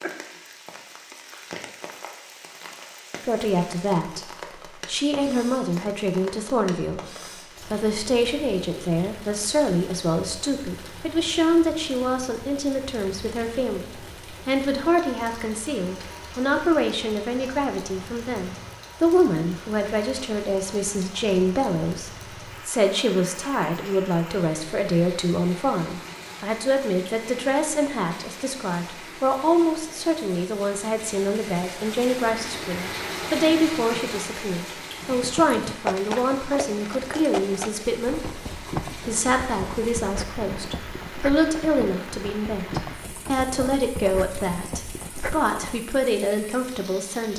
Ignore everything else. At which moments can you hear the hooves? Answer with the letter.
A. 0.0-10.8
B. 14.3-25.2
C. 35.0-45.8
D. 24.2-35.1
C.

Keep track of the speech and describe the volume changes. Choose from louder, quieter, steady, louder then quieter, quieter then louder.
steady.